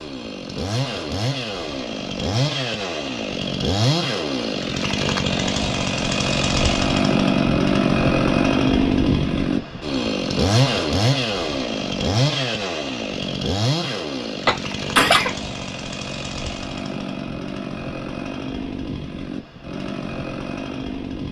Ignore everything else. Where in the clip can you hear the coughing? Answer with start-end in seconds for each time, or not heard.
14.4-15.3.